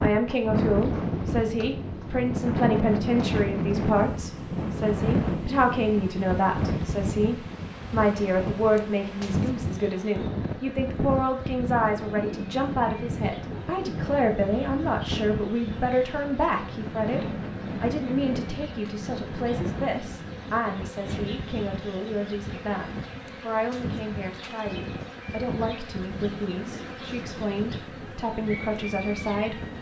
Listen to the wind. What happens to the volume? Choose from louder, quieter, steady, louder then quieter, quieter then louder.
quieter.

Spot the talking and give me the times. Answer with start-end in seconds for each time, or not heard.
0.0-29.7.